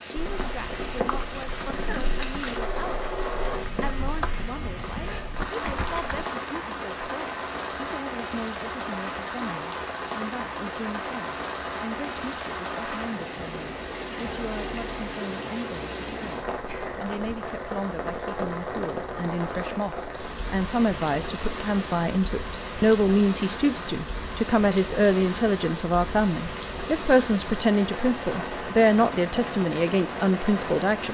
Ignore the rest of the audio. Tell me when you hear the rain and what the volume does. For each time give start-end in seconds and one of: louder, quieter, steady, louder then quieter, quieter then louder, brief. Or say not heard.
0.0-31.0 steady.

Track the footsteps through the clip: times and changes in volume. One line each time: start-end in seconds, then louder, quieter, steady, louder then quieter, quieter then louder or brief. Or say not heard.
not heard.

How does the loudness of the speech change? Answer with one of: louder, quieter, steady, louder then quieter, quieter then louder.
louder.